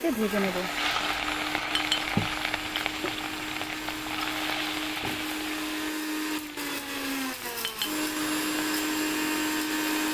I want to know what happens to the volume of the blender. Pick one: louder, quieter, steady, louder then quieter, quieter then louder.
louder.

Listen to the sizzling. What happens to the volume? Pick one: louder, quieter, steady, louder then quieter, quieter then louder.
quieter.